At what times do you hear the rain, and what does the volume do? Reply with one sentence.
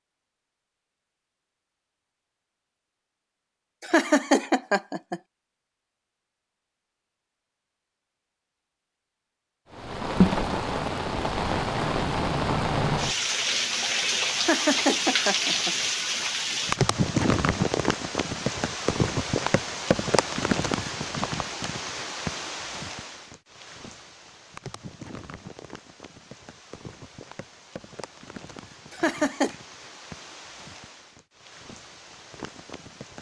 The rain can be heard from 9.7 to 33.1 s, getting quieter.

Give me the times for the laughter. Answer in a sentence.
The laughter can be heard from 3.8 to 5.2 s, from 14.3 to 15.8 s and from 28.9 to 29.6 s.